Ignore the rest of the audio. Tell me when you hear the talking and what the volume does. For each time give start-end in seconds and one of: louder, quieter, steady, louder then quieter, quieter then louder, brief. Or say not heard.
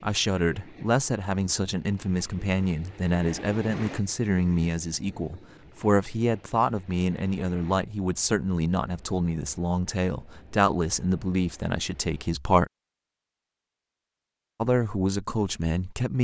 0.0-12.7 steady
14.6-16.1 brief.